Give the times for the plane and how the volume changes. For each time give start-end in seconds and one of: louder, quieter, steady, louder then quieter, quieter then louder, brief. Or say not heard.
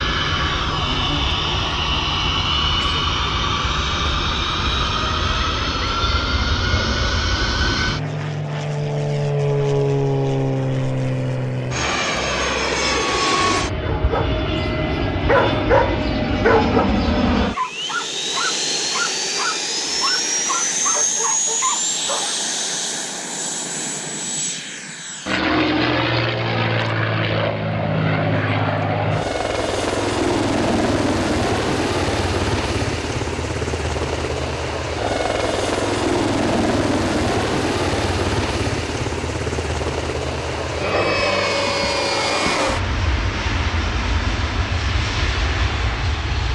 0.0-46.5 steady.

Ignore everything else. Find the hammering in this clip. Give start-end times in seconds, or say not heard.
not heard.